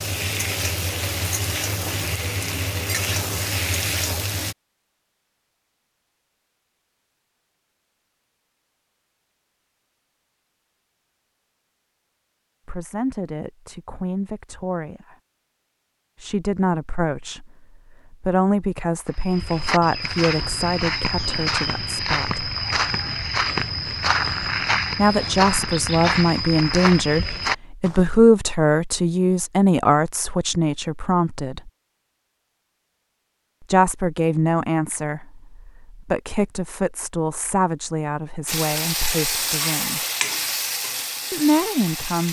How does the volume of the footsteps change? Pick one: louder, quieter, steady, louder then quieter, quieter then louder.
steady.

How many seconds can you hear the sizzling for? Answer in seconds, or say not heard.
8 s.